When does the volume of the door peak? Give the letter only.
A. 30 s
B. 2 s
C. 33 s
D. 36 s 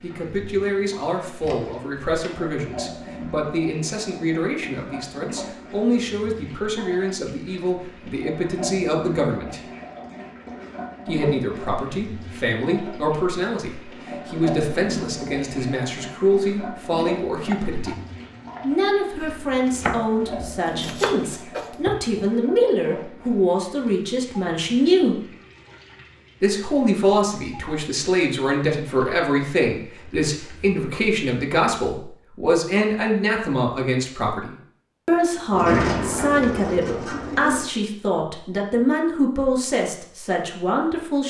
D.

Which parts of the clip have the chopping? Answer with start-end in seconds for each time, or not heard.
17.4-22.2.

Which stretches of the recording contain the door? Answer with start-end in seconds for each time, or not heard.
1.4-2.4, 35.5-37.7.